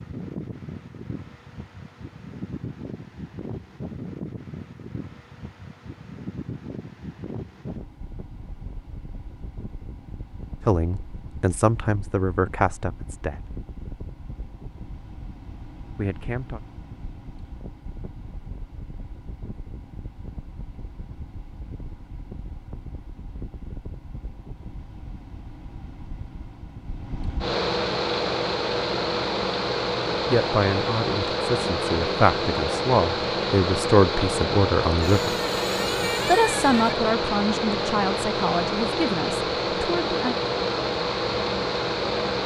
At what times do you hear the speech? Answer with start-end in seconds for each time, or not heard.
10.7-13.6, 15.9-16.6, 30.3-35.4, 36.2-40.4.